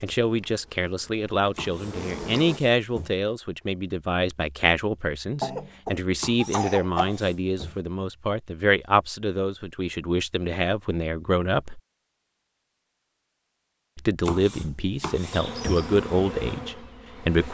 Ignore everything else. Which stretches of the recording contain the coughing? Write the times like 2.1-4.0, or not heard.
5.4-7.2.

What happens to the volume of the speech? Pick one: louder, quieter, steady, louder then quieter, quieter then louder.
steady.